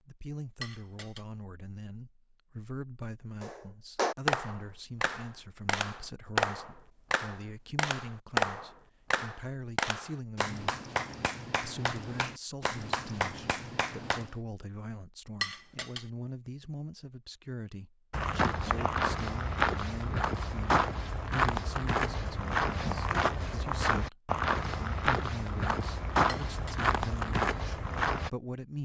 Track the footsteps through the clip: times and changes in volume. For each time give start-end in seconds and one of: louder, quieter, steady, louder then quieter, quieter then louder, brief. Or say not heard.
18.1-28.3 steady.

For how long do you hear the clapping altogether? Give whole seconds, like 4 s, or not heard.
11 s.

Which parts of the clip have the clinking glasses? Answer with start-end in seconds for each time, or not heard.
0.6-1.2, 15.4-16.1, 26.2-26.9.